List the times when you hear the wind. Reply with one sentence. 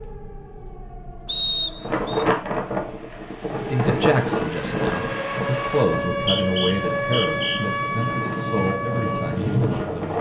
The wind can be heard from 1.8 to 10.1 s.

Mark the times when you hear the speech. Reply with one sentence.
You can hear the speech from 3.7 to 10.1 s.